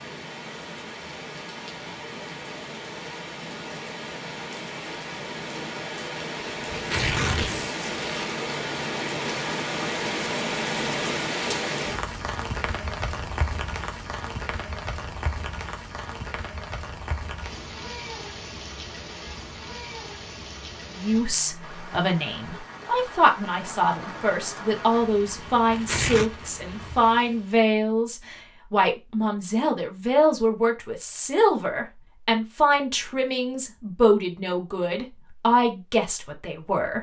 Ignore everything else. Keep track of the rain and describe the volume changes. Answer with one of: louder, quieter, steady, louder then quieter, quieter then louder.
louder then quieter.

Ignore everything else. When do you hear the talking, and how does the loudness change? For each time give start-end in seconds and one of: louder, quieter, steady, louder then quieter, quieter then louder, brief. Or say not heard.
20.9-36.9 steady.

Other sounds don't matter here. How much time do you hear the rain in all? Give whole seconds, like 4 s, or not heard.
28 s.